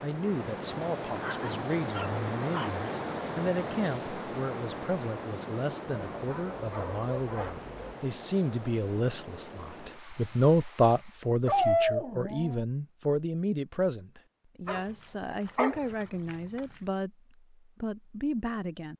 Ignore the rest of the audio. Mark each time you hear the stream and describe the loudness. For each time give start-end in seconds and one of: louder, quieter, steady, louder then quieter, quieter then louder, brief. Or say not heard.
0.0-11.3 quieter.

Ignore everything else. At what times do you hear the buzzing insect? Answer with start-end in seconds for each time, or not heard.
not heard.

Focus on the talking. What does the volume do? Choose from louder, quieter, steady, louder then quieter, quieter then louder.
louder then quieter.